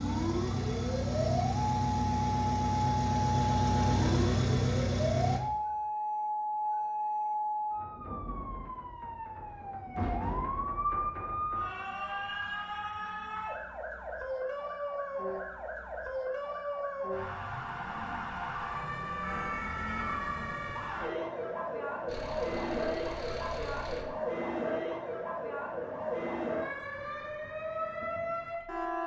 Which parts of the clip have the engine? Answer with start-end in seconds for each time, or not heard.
0.0-5.4, 22.1-24.1.